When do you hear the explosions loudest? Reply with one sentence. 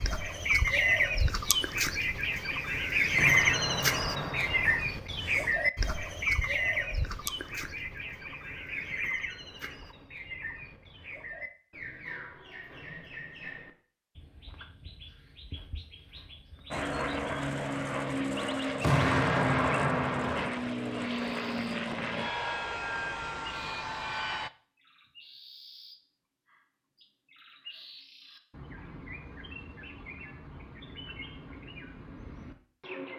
The volume of the explosions peaks at 19 seconds.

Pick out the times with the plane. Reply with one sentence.
The plane can be heard from 16.7 to 24.5 s.